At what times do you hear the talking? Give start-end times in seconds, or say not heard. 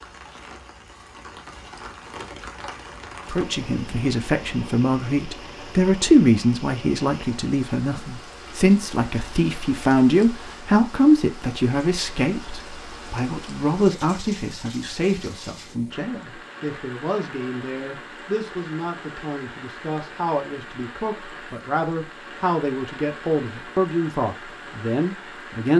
3.2-25.7.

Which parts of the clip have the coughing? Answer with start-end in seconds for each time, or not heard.
not heard.